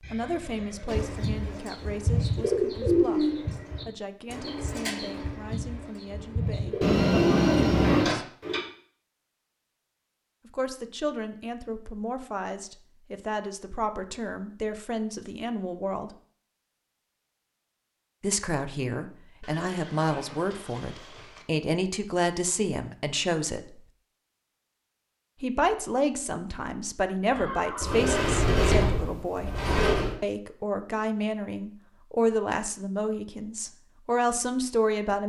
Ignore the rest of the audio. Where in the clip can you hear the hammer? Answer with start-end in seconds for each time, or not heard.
not heard.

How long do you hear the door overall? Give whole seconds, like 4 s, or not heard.
4 s.